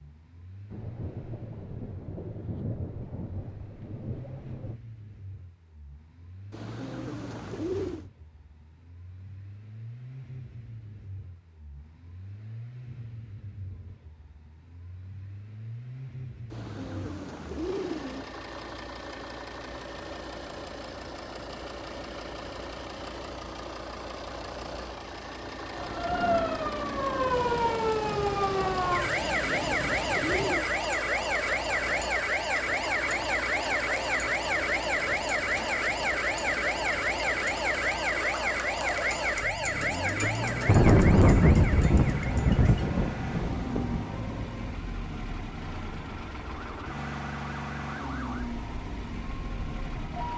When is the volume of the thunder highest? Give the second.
41 s.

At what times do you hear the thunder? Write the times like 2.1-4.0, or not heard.
0.7-4.8, 27.3-30.6, 40.2-44.2.